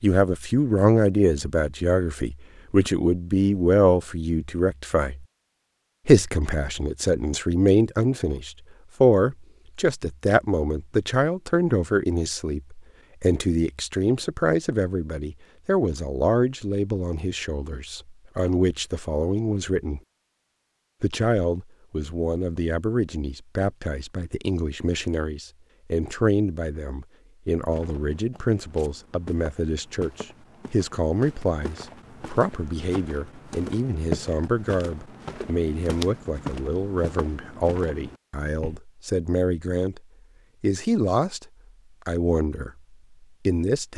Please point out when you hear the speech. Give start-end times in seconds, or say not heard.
0.0-5.2, 6.0-20.0, 21.0-40.0, 40.6-43.9.